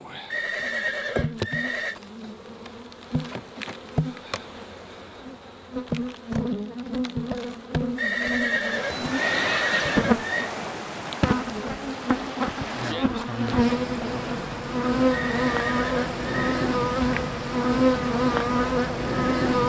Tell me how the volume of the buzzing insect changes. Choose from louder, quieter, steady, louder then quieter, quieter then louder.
louder.